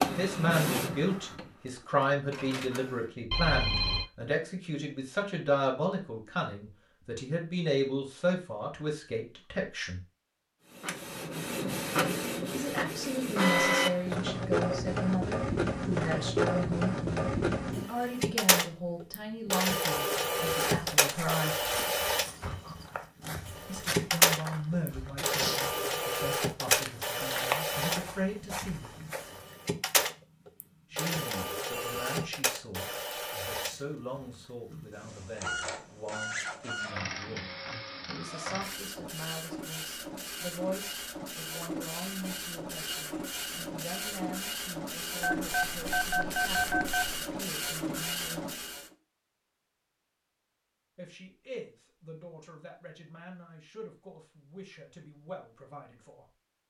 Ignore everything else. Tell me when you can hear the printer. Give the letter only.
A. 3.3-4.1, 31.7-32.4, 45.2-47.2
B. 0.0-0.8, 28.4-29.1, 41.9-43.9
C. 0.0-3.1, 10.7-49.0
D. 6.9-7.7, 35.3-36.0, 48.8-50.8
C.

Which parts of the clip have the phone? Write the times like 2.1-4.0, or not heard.
3.3-4.1, 31.7-32.4, 45.2-47.2.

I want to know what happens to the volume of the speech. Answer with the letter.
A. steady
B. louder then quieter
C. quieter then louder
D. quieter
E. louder
D.